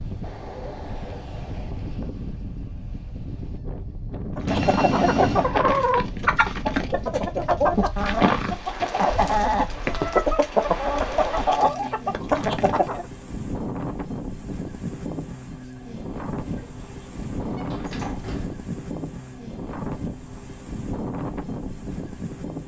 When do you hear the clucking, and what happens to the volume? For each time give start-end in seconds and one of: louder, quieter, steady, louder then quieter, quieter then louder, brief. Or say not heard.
4.3-13.1 steady.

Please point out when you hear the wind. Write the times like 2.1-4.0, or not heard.
0.0-22.6.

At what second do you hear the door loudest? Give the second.
5 s.